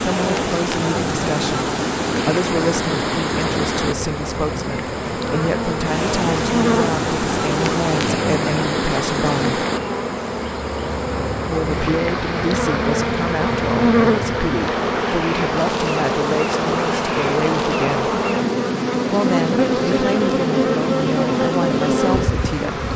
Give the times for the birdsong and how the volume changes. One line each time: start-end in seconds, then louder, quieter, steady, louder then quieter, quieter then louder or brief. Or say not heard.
not heard.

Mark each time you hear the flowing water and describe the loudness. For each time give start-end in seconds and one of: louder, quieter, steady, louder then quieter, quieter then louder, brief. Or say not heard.
0.0-22.9 quieter.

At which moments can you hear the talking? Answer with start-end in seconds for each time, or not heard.
0.0-9.6, 11.4-18.1, 19.1-22.9.